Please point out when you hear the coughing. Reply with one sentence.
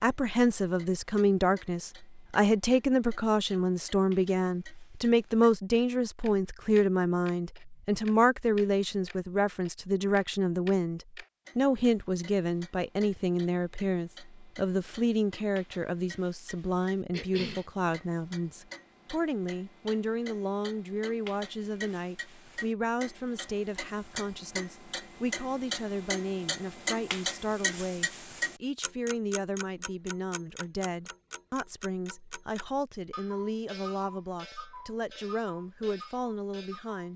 The coughing can be heard from 17.1 to 17.6 s.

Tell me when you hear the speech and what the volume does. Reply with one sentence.
You can hear the speech from 0.0 to 37.1 s, getting quieter.